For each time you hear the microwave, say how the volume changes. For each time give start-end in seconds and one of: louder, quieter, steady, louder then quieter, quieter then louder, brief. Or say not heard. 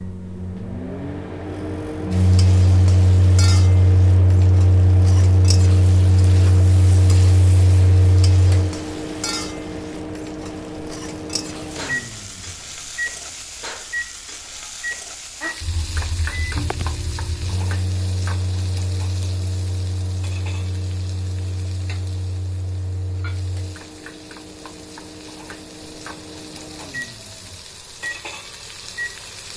0.0-29.1 quieter.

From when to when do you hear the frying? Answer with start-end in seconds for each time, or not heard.
2.1-29.5.